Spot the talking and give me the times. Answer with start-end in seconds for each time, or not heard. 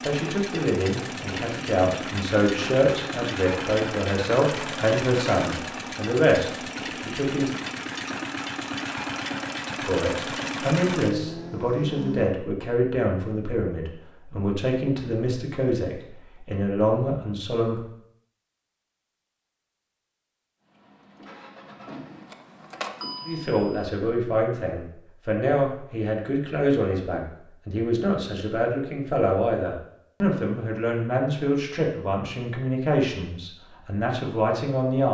0.1-7.5, 9.8-17.9, 23.2-35.0.